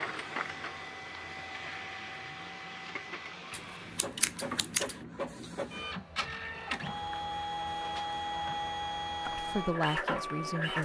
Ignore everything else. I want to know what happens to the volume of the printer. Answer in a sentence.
The loudness of the printer goes up.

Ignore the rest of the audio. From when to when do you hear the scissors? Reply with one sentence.
You can hear the scissors from 3.5 to 5.0 s.